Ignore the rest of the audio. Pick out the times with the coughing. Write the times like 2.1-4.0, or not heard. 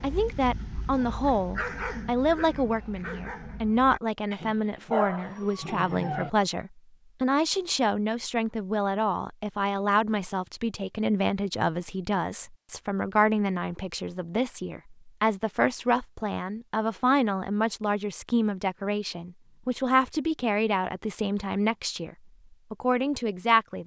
not heard.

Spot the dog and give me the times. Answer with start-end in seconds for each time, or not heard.
0.0-6.3.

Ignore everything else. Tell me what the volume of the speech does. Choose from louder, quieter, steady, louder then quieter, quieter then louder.
steady.